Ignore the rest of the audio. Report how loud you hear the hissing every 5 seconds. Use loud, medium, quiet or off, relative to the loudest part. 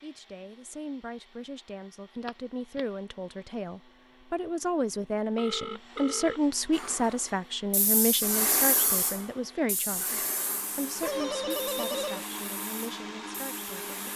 off, loud, medium.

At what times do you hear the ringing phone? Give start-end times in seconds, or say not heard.
2.2-2.9, 5.3-6.4, 11.0-12.2.